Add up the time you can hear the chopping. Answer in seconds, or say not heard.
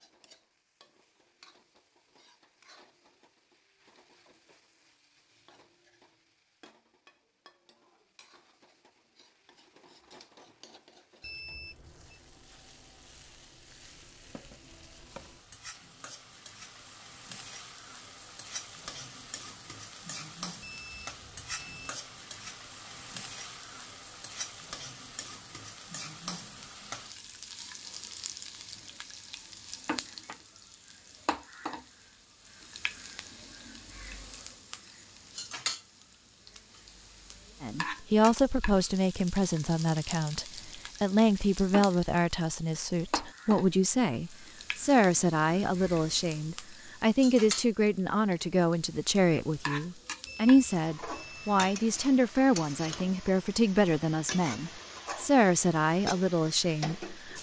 not heard.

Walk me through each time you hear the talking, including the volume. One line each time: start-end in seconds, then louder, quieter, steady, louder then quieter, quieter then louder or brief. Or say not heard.
37.6-57.3 steady.